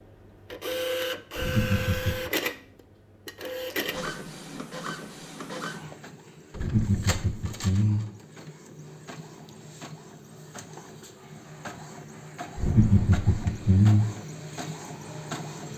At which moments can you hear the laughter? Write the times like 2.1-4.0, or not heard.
1.4-2.3, 6.5-8.1, 12.6-14.2.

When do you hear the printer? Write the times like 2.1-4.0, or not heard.
0.0-15.7.